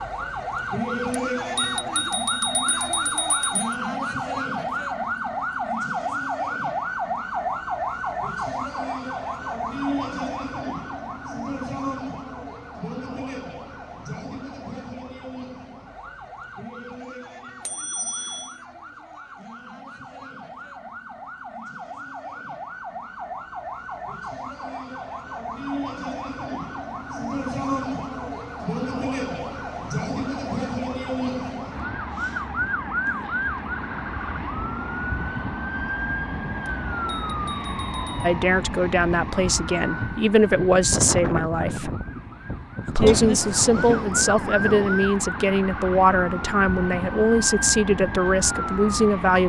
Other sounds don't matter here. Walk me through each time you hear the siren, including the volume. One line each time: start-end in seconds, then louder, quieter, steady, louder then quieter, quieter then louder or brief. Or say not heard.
0.0-49.4 quieter then louder.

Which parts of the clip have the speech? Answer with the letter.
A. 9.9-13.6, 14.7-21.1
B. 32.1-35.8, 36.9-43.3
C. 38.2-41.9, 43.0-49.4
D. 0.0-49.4
C.